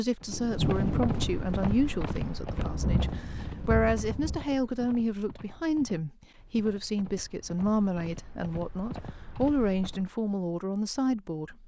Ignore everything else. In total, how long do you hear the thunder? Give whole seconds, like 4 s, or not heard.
4 s.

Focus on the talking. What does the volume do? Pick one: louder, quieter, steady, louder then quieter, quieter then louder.
steady.